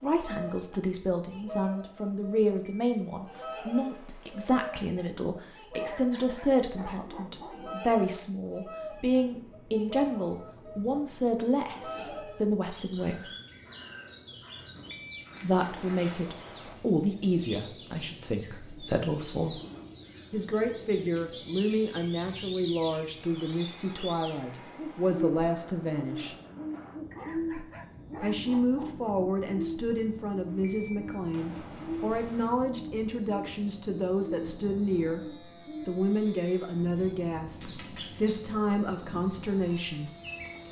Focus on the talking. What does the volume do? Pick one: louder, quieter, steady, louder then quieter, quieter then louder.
steady.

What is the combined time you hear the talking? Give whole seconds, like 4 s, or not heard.
35 s.